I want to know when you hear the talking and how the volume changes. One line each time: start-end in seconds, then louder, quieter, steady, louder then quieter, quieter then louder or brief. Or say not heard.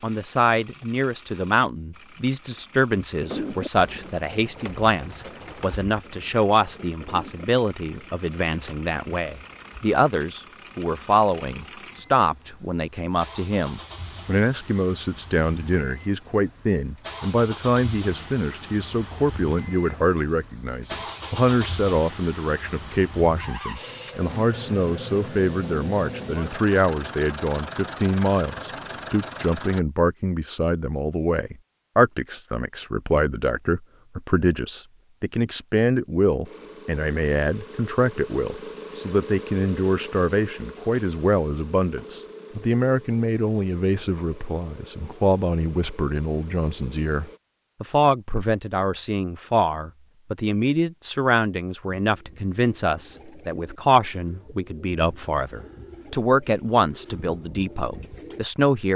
0.0-58.9 steady.